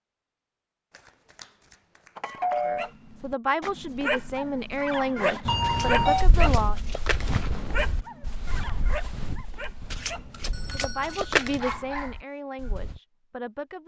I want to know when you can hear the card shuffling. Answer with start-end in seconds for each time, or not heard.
0.9-2.5, 5.6-7.5, 9.9-11.8.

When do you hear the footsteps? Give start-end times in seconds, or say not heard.
6.0-13.0.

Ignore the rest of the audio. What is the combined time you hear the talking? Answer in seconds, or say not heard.
7 s.